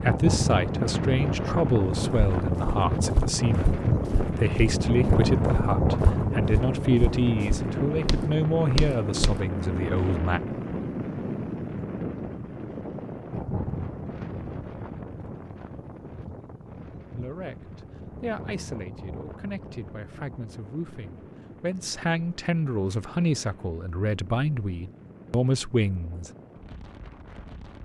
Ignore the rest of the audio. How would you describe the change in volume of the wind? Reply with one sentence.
The loudness of the wind goes down.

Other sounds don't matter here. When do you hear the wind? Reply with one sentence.
You can hear the wind from 0.0 to 27.7 s.